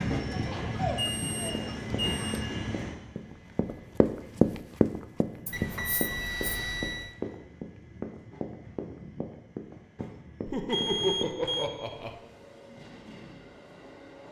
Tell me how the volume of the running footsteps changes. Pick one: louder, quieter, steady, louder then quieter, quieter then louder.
louder then quieter.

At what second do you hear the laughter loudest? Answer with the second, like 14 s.
11 s.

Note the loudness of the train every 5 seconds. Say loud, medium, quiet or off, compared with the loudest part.
loud, quiet, quiet.